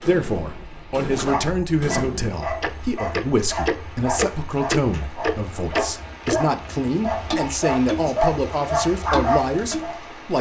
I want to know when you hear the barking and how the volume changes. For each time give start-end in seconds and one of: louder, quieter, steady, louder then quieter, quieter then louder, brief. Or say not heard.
1.2-10.0 louder.